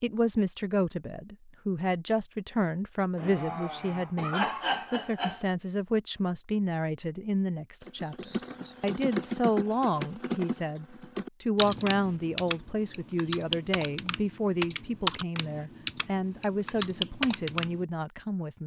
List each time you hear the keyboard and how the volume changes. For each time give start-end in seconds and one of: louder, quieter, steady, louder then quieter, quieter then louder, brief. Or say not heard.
7.8-17.9 steady.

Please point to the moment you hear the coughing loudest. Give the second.
5 s.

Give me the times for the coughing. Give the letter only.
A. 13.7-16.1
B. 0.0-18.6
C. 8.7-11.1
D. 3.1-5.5
D.